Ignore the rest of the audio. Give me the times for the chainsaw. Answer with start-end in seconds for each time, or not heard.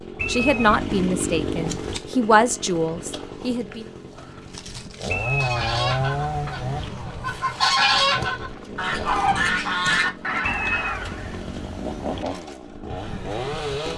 0.0-13.9.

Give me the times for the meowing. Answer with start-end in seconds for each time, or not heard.
0.1-2.0, 5.1-6.9, 10.4-12.2.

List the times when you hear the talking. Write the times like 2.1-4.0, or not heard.
0.2-3.9.